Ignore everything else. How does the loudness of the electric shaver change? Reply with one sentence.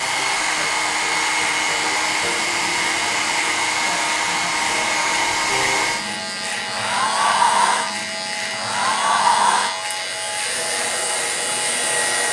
The volume of the electric shaver stays about the same.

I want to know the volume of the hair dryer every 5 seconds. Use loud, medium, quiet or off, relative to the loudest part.
loud, loud, medium.